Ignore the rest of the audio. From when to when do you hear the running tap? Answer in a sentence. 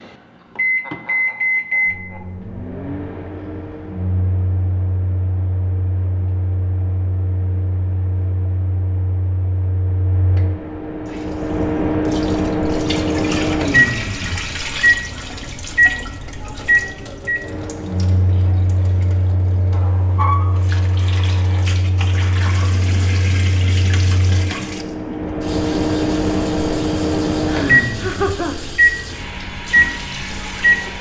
The running tap can be heard from 11.1 to 30.9 s.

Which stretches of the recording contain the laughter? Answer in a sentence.
You can hear the laughter from 0.3 to 2.4 s and from 27.4 to 28.7 s.